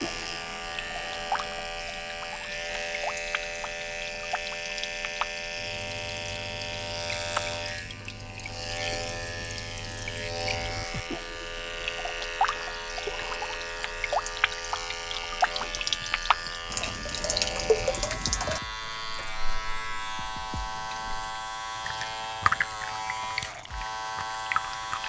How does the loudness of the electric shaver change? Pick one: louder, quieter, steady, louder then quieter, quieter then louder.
steady.